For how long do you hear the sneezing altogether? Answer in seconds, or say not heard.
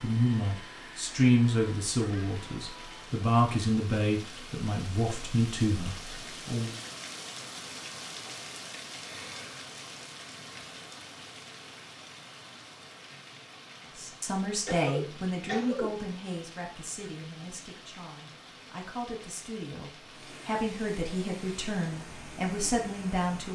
3 s.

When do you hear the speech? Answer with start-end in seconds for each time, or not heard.
0.0-6.8, 13.9-23.5.